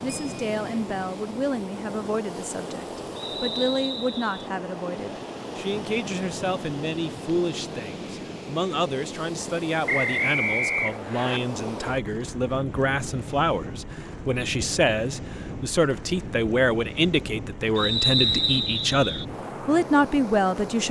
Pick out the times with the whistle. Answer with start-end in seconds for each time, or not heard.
3.1-4.5, 9.8-11.4, 17.8-19.2.